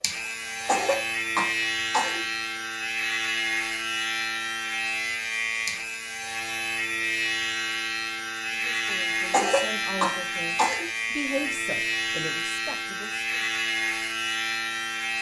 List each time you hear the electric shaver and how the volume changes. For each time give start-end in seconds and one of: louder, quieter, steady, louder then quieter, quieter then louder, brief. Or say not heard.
0.0-15.1 steady.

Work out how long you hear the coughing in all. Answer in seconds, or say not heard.
3 s.